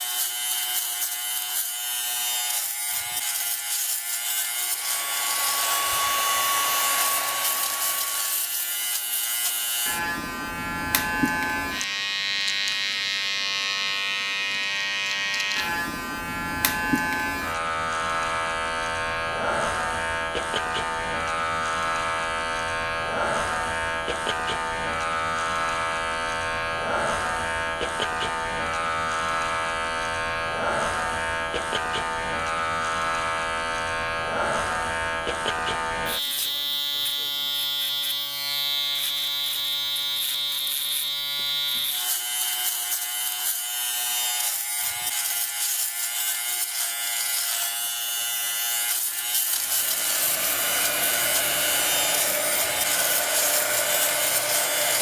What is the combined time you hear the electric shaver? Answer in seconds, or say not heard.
55 s.